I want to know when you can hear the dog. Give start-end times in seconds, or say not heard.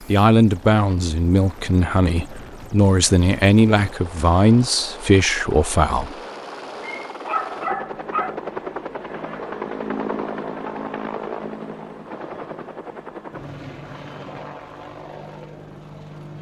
6.8-8.3.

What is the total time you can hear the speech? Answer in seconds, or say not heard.
6 s.